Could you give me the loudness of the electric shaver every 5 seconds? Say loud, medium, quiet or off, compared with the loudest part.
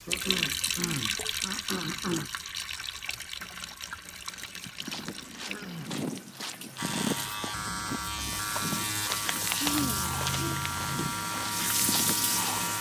off, loud, loud.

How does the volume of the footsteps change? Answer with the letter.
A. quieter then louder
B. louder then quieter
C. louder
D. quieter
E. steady
E.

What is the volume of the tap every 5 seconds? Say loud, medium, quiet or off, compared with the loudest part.
loud, medium, loud.